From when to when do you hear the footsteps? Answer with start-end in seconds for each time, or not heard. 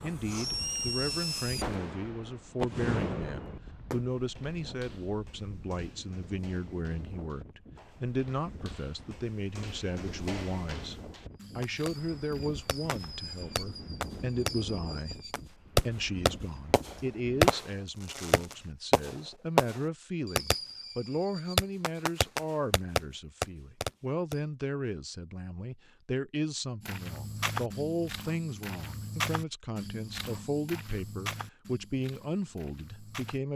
4.0-13.2, 26.8-33.4.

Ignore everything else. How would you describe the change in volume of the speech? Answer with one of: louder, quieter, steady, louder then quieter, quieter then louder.
steady.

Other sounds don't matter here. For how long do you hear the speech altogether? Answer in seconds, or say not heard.
33 s.